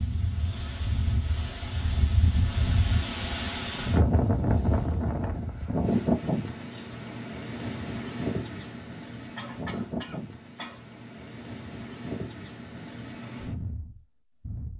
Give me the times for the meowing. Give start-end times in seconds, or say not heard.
not heard.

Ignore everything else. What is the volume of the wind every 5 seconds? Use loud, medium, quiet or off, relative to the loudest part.
loud, loud, medium.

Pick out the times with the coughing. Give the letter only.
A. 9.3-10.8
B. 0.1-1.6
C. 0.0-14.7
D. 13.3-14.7
A.